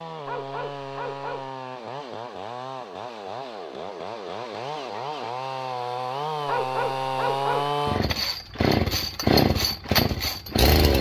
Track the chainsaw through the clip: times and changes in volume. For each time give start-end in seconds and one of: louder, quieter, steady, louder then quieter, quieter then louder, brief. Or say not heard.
0.0-10.9 louder.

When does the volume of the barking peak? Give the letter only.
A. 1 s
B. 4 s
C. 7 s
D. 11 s
C.